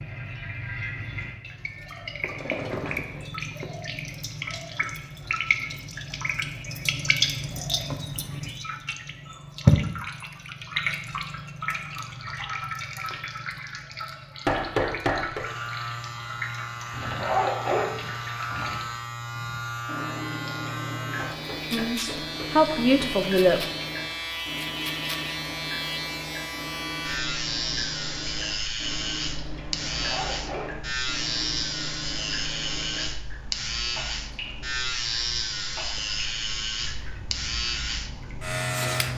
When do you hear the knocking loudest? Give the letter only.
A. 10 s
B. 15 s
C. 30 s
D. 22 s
B.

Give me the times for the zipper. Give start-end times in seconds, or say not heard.
2.2-3.2, 16.9-18.8, 29.8-30.9.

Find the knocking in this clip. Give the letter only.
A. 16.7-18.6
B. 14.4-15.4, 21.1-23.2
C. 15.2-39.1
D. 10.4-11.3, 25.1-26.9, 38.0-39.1
B.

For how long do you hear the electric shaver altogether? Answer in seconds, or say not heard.
24 s.